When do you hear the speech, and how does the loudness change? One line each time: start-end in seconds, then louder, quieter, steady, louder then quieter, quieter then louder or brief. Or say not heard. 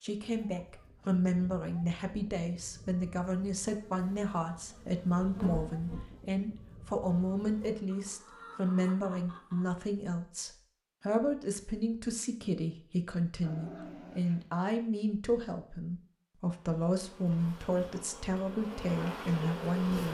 0.0-20.0 steady.